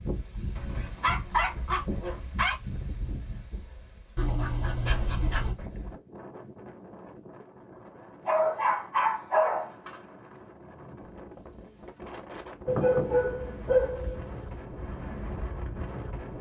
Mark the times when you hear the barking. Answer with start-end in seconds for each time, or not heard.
0.6-2.5, 4.2-5.5, 8.2-9.9, 12.7-14.6.